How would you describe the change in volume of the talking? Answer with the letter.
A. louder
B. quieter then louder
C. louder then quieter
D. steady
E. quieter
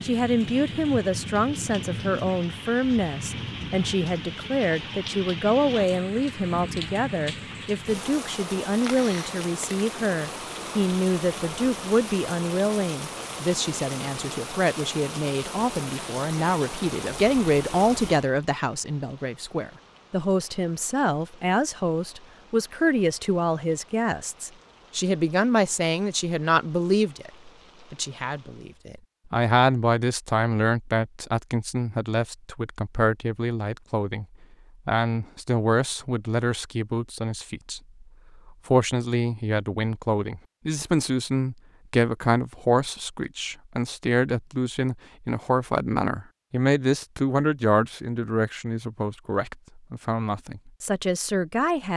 D.